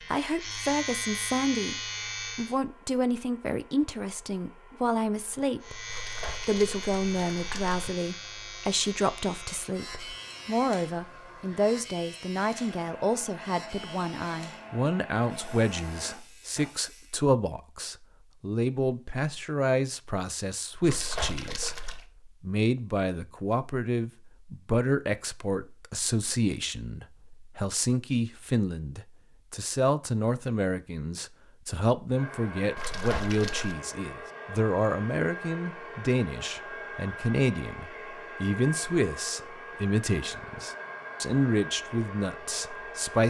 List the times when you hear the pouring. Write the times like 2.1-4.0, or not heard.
5.8-7.9, 20.8-22.1, 32.8-33.8.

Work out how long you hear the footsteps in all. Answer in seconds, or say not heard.
not heard.